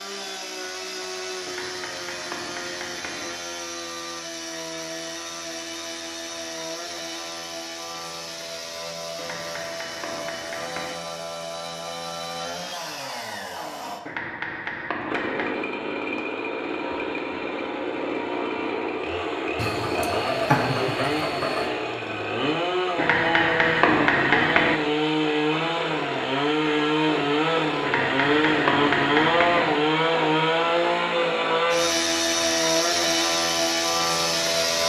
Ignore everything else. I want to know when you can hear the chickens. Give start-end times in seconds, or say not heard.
19.6-21.8.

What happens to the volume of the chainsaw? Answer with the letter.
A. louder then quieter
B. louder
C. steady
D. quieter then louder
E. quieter
B.